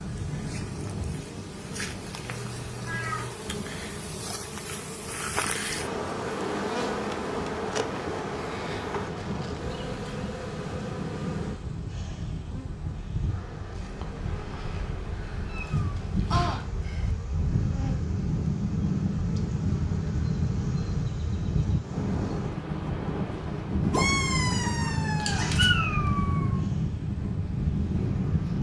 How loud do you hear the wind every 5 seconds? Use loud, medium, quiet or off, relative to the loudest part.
medium, quiet, medium, loud, loud, loud.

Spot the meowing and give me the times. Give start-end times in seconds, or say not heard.
2.2-3.3, 15.5-17.1, 23.9-26.6.